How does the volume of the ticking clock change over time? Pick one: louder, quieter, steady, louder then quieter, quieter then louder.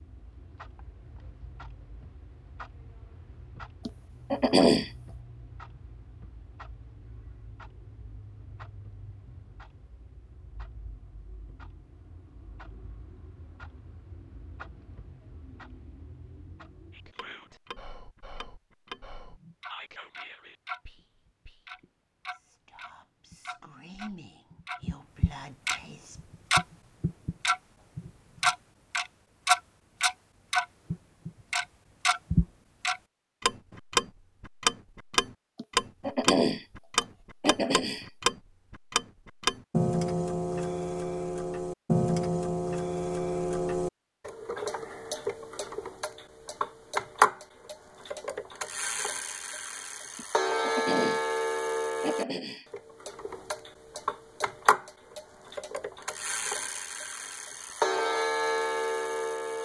louder.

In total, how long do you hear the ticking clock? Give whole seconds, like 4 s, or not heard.
59 s.